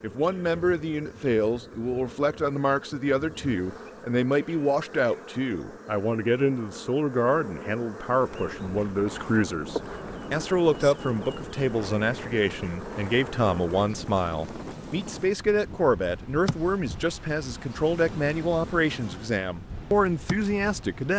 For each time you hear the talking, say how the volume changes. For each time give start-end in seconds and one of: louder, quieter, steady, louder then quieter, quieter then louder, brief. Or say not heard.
0.0-21.1 steady.